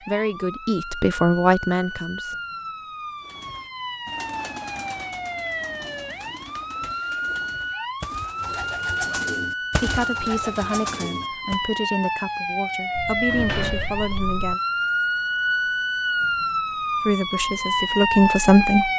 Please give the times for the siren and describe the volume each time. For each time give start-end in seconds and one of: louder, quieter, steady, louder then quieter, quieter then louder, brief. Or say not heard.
0.0-18.9 louder.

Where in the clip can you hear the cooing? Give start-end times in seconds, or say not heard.
3.2-11.6.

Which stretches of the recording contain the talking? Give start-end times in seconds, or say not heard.
0.1-2.4, 9.8-14.6, 17.1-18.9.